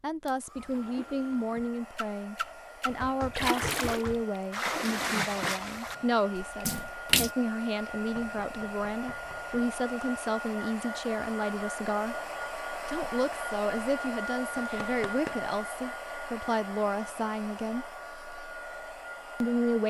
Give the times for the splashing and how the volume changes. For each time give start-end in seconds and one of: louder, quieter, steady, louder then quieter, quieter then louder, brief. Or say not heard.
0.6-7.3 louder then quieter.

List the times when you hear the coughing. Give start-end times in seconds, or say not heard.
not heard.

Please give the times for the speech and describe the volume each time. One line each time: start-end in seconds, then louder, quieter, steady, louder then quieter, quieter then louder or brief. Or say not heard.
0.0-12.2 steady
12.8-17.9 steady
19.4-19.8 brief.